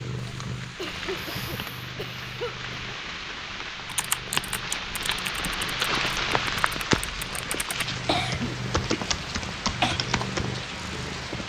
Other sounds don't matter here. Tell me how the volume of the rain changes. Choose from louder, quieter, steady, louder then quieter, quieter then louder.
louder then quieter.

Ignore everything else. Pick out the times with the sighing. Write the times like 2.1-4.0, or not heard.
1.1-1.9.